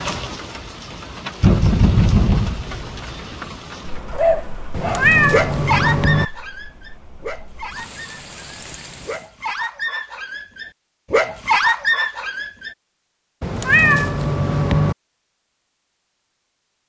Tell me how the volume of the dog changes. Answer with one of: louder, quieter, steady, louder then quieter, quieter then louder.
quieter then louder.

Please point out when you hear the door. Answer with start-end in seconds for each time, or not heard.
not heard.